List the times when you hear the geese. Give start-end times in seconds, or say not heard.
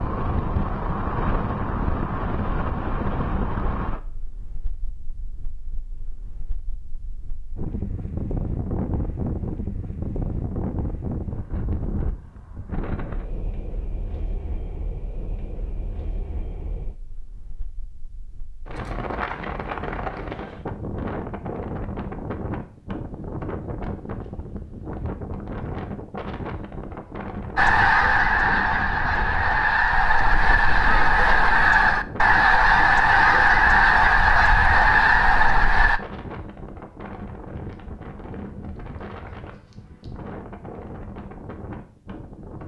27.6-36.0.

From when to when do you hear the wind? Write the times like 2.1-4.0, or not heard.
0.0-42.6.